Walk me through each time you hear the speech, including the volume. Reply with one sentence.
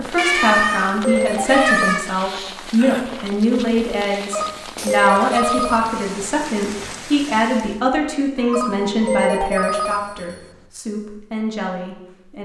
You can hear the speech from 0.0 to 12.4 s, getting quieter.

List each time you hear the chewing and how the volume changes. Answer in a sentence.
The chewing can't be heard in this clip.